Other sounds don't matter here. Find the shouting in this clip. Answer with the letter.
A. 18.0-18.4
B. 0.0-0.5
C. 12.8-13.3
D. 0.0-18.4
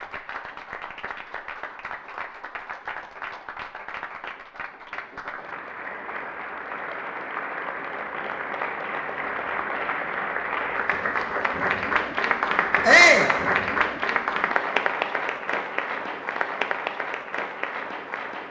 C.